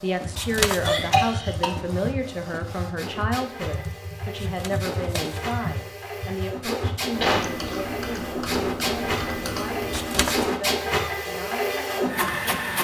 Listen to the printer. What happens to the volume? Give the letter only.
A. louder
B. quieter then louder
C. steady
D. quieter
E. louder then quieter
A.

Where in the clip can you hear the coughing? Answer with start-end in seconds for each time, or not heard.
0.8-1.8, 7.2-8.0.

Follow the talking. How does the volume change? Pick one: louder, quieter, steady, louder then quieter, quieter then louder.
quieter.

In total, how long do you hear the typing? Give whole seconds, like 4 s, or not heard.
10 s.